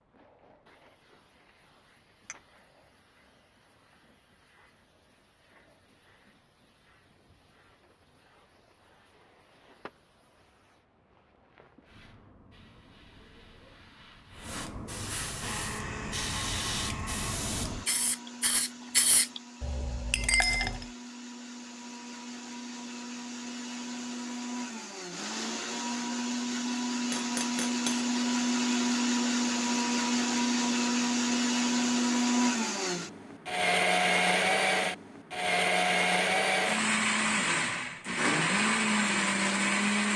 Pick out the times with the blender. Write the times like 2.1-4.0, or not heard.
15.4-40.1.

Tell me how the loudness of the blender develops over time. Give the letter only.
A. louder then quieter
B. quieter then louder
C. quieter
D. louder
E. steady
D.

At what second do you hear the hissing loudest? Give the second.
19 s.